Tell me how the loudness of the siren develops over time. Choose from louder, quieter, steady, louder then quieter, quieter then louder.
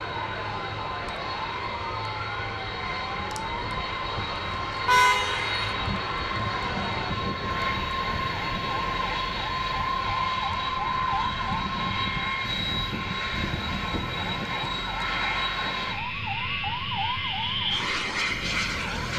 steady.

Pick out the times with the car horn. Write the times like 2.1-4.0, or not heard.
4.8-5.8.